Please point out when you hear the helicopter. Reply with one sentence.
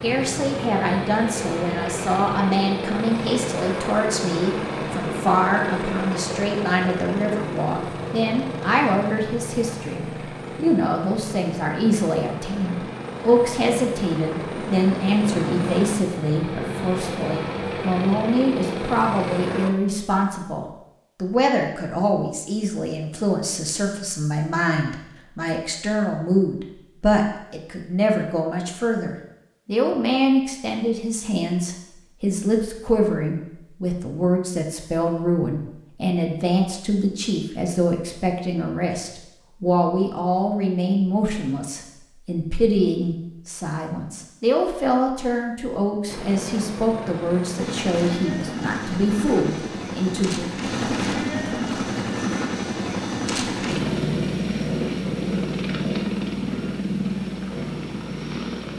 You can hear the helicopter from 0.0 to 19.7 s and from 46.0 to 58.7 s.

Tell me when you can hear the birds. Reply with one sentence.
You can't hear the birds here.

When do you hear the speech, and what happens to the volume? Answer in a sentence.
The speech can be heard from 0.0 to 50.5 s, at a steady volume.